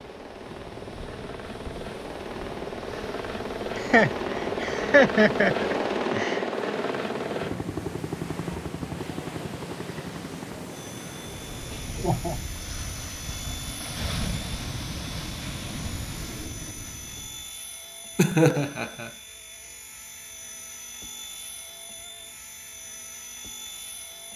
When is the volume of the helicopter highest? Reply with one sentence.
The volume of the helicopter peaks at 6 seconds.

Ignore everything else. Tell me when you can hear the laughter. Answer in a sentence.
You can hear the laughter from 3.8 to 6.5 s, from 11.7 to 12.4 s and from 18.1 to 19.1 s.